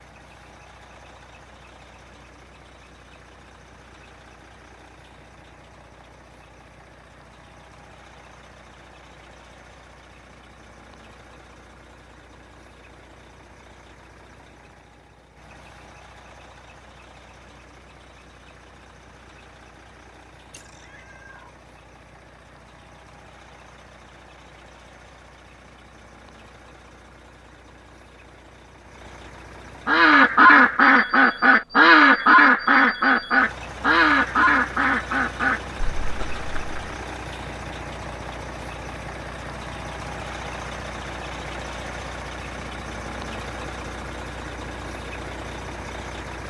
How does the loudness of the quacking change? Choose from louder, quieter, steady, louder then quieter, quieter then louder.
quieter.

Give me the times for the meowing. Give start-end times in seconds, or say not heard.
20.5-21.6.